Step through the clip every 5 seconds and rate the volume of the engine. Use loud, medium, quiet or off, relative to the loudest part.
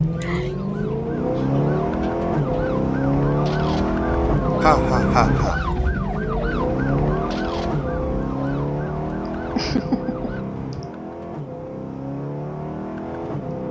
loud, loud, medium.